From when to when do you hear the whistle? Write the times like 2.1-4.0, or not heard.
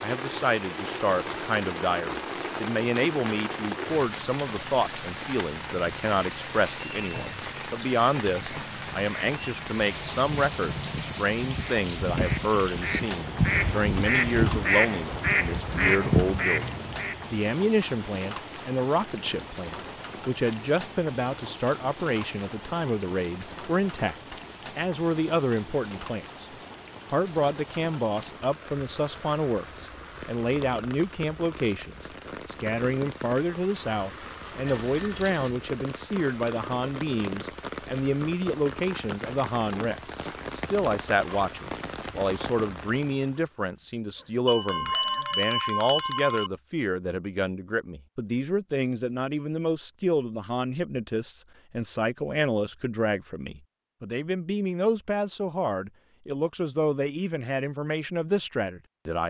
not heard.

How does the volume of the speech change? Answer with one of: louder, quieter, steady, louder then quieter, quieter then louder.
steady.